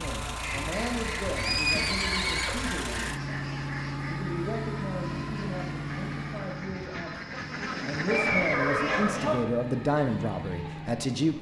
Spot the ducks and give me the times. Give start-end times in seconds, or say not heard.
0.4-9.2.